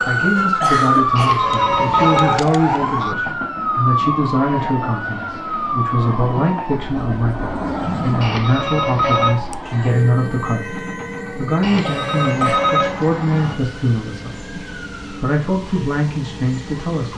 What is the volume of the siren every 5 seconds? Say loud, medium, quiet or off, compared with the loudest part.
loud, medium, quiet, quiet.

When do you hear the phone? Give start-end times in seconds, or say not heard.
1.1-2.4, 8.2-9.3, 11.6-13.6.